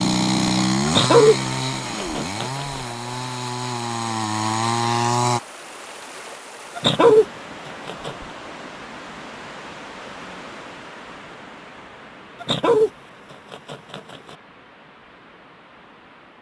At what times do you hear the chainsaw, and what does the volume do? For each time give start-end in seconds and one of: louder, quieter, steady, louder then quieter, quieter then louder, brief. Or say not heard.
0.0-5.4 quieter then louder.